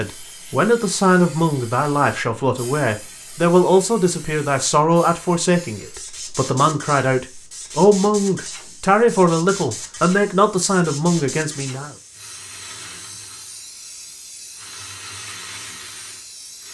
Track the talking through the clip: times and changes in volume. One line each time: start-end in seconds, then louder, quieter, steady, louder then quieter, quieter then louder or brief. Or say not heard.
0.0-11.9 steady.